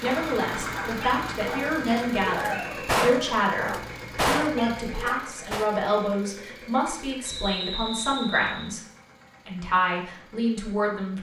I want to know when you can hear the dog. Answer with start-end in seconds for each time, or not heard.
0.0-5.2.